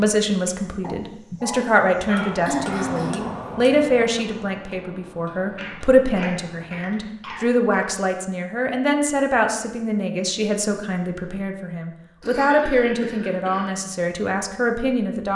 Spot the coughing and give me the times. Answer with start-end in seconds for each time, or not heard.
2.5-3.3, 5.5-7.9, 12.2-13.8.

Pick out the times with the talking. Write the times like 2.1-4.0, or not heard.
0.0-15.3.